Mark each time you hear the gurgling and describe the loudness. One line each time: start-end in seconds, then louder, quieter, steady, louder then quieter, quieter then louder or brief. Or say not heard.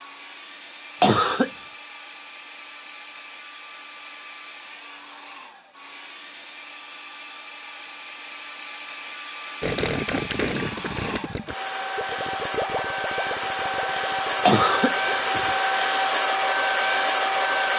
9.6-15.3 quieter.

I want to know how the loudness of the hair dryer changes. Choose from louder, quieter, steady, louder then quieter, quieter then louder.
louder.